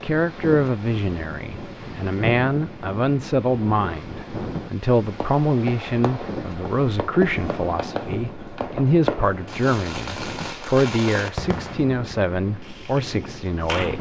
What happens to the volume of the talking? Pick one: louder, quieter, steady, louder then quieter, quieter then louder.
steady.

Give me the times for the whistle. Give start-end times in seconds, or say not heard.
not heard.